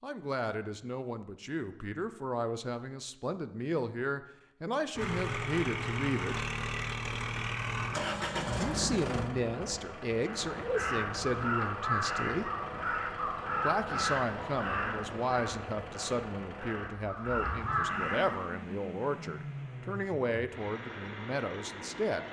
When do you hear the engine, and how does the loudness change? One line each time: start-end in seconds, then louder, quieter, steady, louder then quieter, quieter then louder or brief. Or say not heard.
5.0-22.2 quieter.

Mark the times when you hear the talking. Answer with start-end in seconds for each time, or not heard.
0.0-6.5, 8.4-12.5, 13.6-22.2.